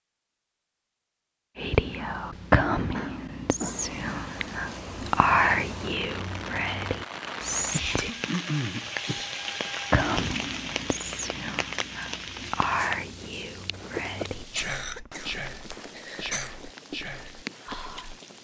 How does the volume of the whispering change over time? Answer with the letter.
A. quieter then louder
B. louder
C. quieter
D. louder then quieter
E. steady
C.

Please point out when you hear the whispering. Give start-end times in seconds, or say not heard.
1.6-8.1, 9.9-18.2.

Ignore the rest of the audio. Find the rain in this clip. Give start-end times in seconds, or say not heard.
3.7-18.3.